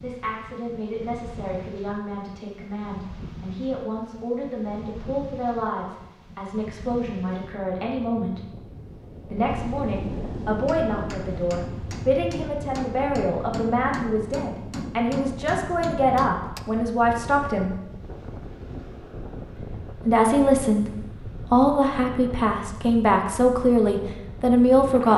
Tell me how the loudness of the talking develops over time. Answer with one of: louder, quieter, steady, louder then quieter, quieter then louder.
louder.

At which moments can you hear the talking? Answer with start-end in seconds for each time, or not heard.
0.0-8.4, 9.3-17.8, 19.6-25.1.